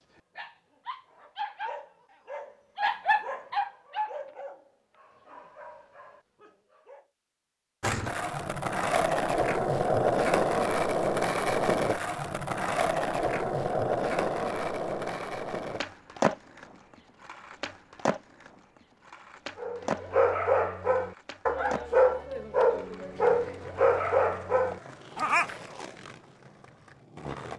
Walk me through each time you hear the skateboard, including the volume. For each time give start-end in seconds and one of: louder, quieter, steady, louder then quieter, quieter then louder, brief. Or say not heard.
7.8-27.5 quieter.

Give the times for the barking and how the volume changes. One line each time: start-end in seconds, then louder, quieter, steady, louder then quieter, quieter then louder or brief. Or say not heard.
0.1-7.0 louder then quieter
19.6-25.6 steady.